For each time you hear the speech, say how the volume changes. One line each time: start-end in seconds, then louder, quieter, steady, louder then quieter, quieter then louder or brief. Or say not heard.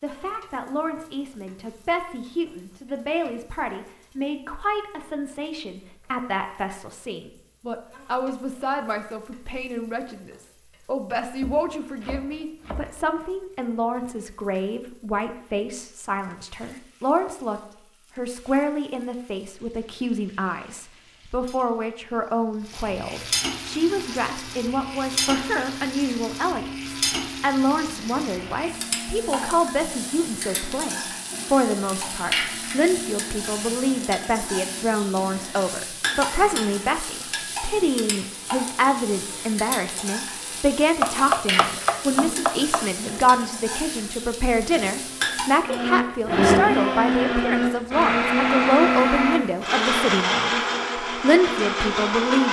0.0-52.4 louder.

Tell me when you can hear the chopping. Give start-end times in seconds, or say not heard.
11.4-13.0, 41.0-42.9.